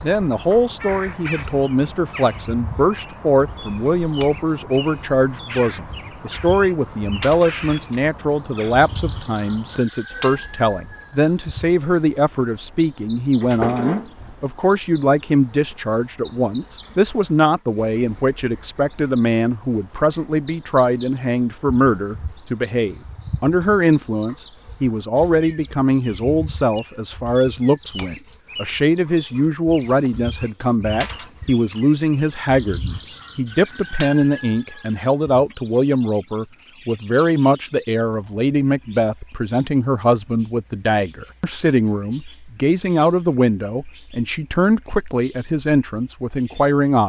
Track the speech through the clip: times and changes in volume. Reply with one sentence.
You can hear the speech from 0.0 to 47.0 s, at a steady volume.